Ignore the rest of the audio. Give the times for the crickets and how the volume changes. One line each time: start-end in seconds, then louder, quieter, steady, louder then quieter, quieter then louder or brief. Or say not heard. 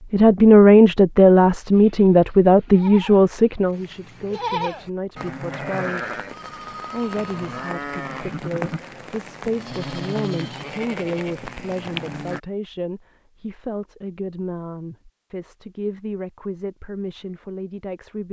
not heard.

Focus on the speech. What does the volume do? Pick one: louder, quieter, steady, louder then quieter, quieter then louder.
quieter.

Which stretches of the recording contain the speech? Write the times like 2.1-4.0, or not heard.
0.1-6.2, 6.9-18.2.